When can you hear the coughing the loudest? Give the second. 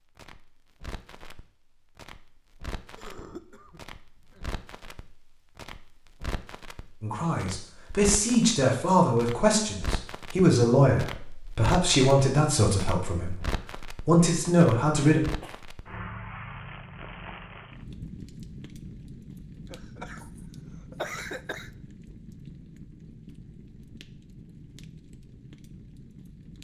21 s.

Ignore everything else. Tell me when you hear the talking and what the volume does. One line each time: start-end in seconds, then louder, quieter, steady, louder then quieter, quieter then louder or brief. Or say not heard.
7.0-15.2 steady.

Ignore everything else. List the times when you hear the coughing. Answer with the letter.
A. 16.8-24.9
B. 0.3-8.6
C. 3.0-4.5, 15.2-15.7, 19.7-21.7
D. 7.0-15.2
C.